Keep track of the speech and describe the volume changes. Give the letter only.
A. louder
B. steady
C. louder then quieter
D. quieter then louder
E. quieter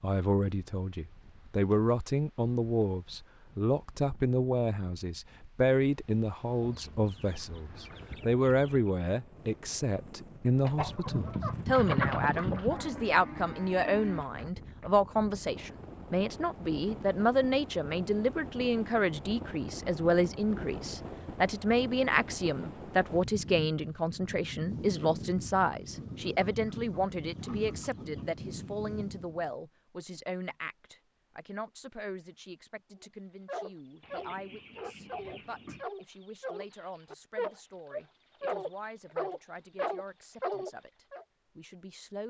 E.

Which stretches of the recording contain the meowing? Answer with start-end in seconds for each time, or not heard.
not heard.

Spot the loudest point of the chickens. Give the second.
12 s.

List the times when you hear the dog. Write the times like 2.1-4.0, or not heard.
33.0-41.2.